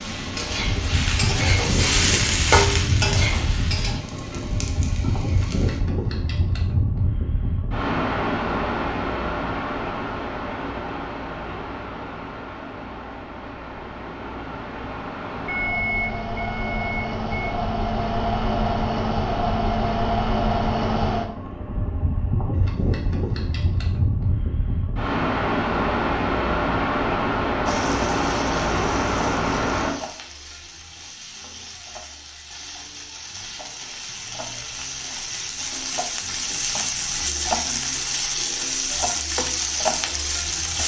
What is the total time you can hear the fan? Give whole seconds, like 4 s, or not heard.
30 s.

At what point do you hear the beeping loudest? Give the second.
16 s.